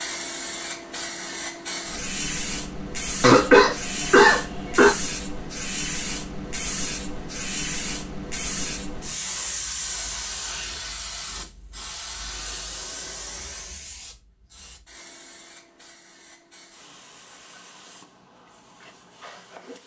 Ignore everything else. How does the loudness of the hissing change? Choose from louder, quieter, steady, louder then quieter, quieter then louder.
quieter.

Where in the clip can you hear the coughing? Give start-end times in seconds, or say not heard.
3.2-5.0.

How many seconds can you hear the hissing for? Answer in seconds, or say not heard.
20 s.